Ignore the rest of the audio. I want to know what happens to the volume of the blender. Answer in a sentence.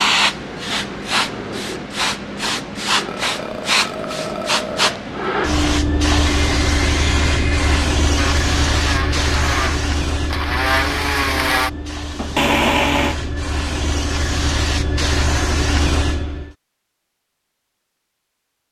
The volume of the blender goes up.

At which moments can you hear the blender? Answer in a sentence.
The blender can be heard from 6.5 to 13.2 s.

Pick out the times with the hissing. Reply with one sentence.
The hissing can be heard from 0.0 to 16.4 s.